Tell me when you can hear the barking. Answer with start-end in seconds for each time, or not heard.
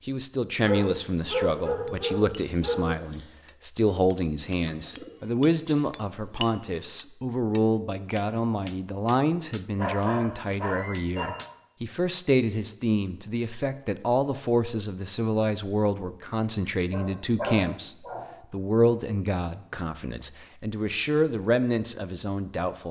0.6-3.2, 9.8-11.3, 16.7-18.2.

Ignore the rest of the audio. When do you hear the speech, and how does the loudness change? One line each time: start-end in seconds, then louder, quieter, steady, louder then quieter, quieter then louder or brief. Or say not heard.
0.1-22.8 steady.